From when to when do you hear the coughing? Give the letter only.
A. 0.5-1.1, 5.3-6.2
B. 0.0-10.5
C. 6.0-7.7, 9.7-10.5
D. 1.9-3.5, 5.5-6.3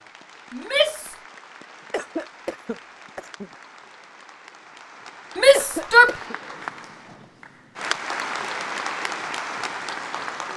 D.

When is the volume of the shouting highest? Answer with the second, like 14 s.
6 s.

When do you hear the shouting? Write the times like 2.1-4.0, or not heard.
0.5-1.1, 5.3-6.2.